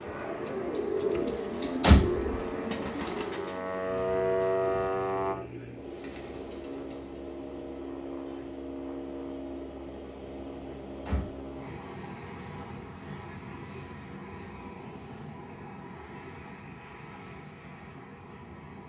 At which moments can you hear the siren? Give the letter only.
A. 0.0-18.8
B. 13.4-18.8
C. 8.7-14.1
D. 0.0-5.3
D.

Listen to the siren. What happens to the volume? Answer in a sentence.
The volume of the siren goes up.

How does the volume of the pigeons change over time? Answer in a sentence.
The volume of the pigeons goes down.